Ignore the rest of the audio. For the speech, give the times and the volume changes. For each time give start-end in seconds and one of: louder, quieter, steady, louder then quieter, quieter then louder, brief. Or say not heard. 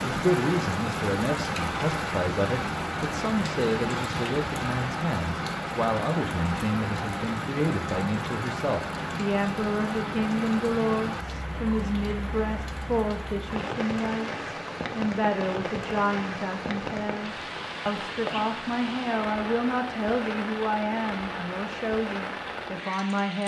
0.1-23.4 steady.